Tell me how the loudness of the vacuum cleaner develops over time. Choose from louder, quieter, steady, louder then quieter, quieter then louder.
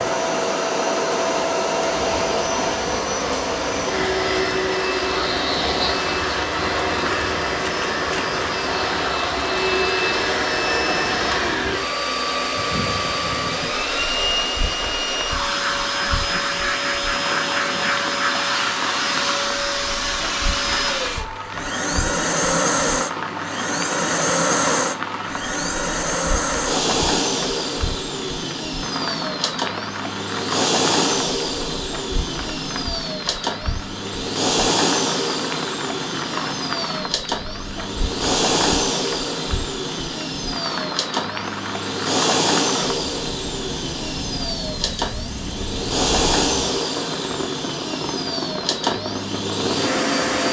steady.